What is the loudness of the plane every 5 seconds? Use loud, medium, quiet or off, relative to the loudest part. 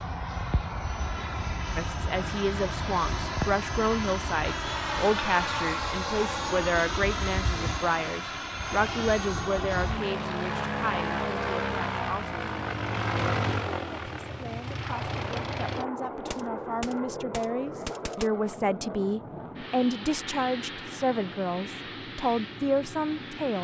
loud, loud, loud, medium, medium.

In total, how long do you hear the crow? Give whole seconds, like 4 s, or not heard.
not heard.